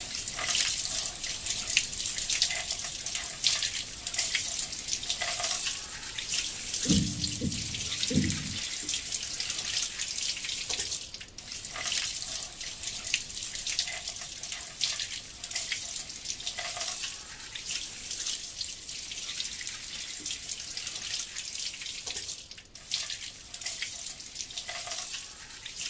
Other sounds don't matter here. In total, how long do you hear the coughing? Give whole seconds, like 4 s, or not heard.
2 s.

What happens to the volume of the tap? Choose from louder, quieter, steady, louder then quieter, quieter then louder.
quieter.